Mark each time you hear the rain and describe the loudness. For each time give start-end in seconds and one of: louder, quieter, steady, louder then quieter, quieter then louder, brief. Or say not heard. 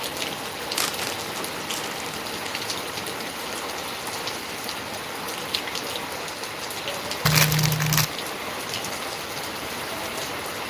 0.0-10.6 steady.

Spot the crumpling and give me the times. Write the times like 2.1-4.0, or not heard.
0.8-2.2, 7.2-8.1.